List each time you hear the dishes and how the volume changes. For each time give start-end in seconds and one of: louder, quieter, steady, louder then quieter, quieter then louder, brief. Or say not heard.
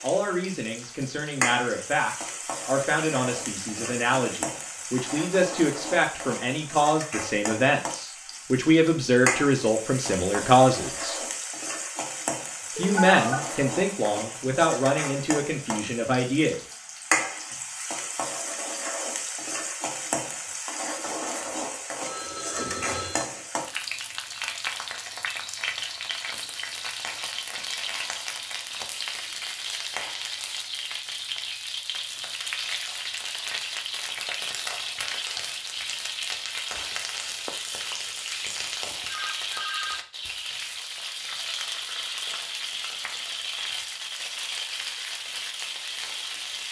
not heard.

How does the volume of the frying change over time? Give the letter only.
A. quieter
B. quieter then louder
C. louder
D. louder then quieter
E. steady
E.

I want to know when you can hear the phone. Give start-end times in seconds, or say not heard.
12.8-13.4, 21.5-23.2, 39.0-40.0.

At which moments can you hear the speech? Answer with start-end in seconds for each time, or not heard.
0.0-11.2, 12.8-16.6.